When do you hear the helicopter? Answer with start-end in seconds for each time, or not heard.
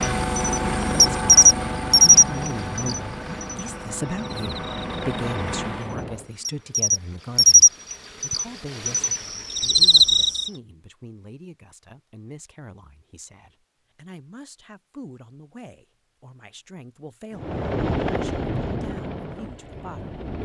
0.0-6.3, 17.3-20.4.